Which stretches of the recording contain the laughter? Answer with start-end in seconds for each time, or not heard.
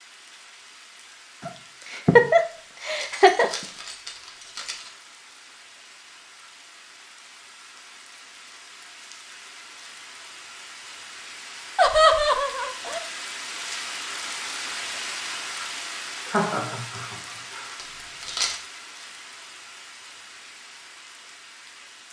1.4-3.5, 11.8-13.0, 16.2-17.8.